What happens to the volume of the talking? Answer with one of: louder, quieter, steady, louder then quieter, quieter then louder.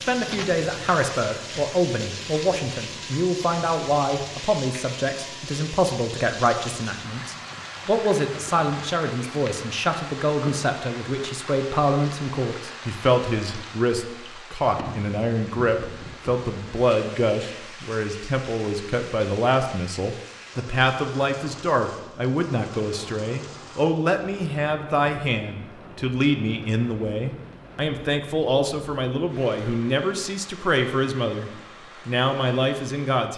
steady.